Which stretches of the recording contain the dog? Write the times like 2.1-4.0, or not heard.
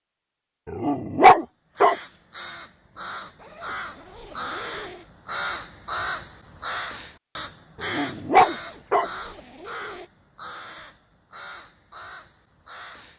0.7-1.9, 7.8-9.1.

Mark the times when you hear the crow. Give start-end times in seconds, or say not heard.
1.8-13.1.